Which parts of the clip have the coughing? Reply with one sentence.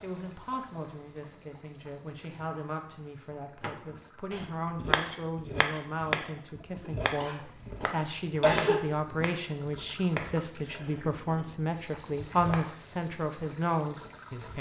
You can hear the coughing from 6.8 to 8.8 s.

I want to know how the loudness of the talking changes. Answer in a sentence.
The volume of the talking goes up.